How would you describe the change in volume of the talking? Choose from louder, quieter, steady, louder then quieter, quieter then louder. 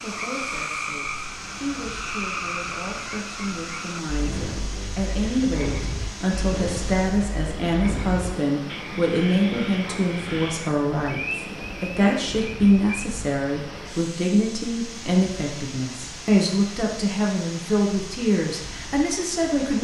louder.